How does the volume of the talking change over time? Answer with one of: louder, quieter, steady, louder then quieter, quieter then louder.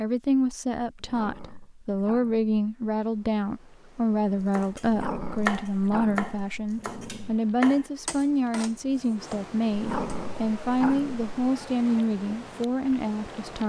steady.